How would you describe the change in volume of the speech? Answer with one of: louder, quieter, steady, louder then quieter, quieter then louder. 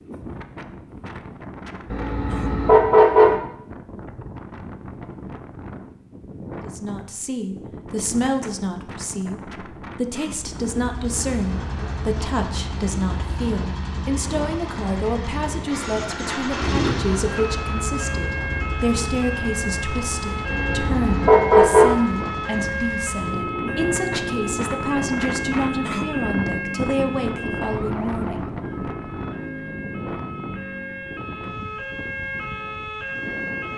steady.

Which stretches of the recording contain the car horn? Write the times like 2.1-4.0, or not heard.
1.9-3.4, 20.4-21.9.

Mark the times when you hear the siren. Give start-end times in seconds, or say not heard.
17.2-33.7.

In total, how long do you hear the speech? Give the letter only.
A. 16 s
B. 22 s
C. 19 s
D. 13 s
B.